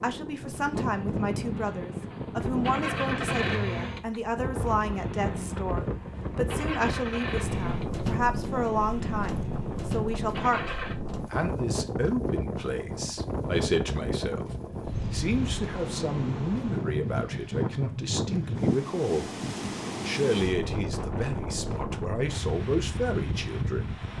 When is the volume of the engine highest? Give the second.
3 s.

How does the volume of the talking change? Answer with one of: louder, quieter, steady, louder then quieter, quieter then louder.
steady.